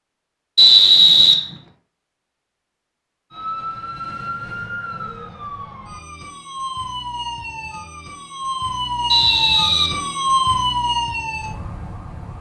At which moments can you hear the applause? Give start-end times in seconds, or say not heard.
not heard.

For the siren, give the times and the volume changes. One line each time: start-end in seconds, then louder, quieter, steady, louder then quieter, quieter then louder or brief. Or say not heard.
3.3-12.3 louder.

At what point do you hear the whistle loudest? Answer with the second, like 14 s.
1 s.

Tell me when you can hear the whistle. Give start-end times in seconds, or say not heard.
0.6-1.4, 9.1-9.9.